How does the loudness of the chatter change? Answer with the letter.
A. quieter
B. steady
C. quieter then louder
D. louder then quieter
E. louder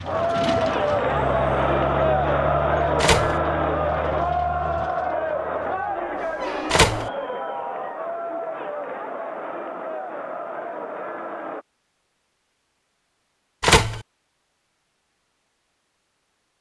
A.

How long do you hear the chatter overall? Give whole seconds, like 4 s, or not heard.
12 s.